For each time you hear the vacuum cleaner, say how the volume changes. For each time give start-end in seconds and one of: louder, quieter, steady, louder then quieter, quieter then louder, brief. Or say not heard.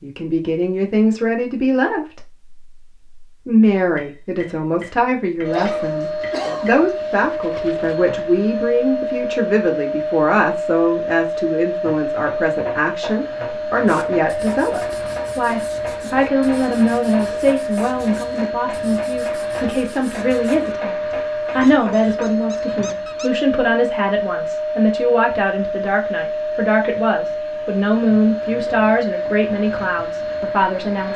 5.4-31.1 steady.